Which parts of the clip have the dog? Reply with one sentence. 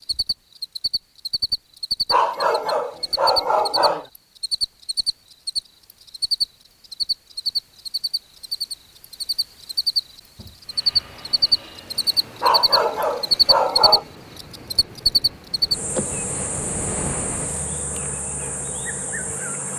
You can hear the dog from 2.1 to 4.0 s and from 12.4 to 14.1 s.